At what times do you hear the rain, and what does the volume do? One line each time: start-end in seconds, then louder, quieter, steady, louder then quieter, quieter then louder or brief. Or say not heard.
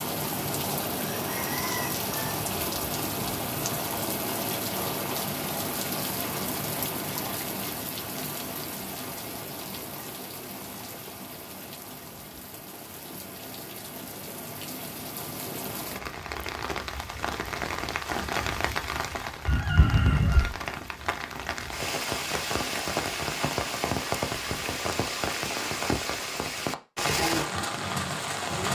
0.0-28.6 quieter then louder.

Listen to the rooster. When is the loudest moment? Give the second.
20 s.